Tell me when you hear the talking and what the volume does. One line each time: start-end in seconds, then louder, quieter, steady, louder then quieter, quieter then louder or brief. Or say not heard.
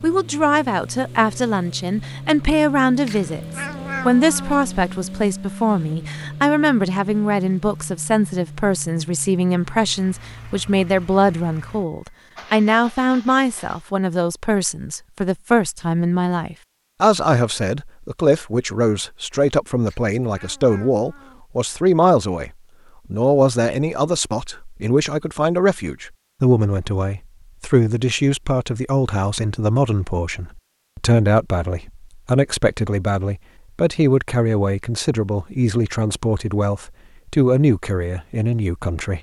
0.0-22.5 steady
23.1-39.1 steady.